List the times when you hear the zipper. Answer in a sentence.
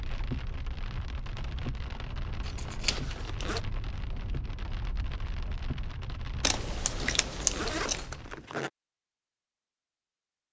The zipper can be heard from 2.8 to 3.6 s and from 7.0 to 8.7 s.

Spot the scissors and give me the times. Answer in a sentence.
The scissors can be heard from 2.4 to 3.2 s and from 6.4 to 8.1 s.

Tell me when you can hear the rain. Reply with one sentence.
You can hear the rain from 0.0 to 8.4 s.